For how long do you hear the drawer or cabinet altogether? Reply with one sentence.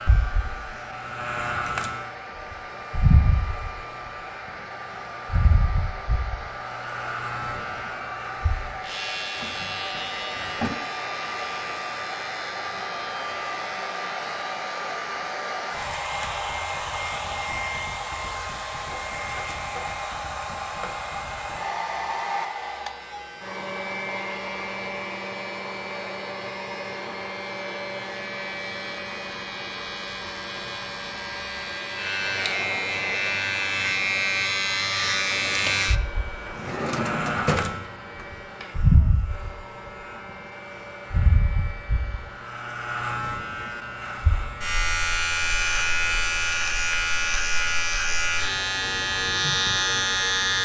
You can hear the drawer or cabinet for 3 seconds altogether.